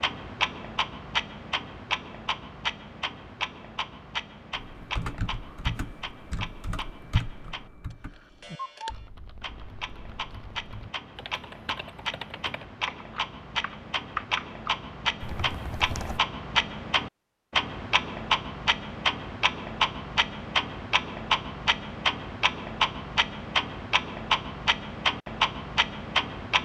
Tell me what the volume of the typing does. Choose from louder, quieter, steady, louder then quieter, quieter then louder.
quieter then louder.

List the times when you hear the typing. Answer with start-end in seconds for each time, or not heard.
4.5-16.2.